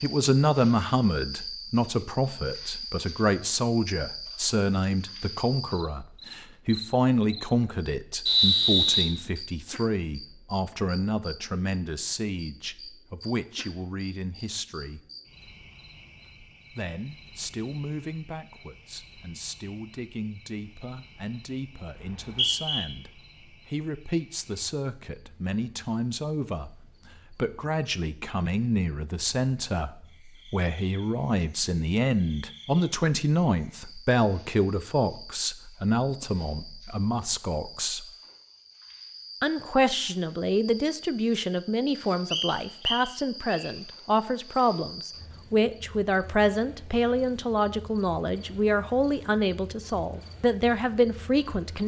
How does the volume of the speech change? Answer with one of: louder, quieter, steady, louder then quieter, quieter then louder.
quieter then louder.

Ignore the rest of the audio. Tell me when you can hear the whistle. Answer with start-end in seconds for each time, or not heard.
8.2-9.1, 22.0-22.9, 42.3-43.7.